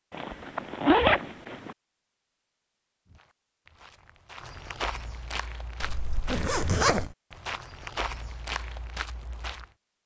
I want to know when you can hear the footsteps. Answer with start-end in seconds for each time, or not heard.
3.0-9.7.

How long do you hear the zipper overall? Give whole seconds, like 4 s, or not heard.
3 s.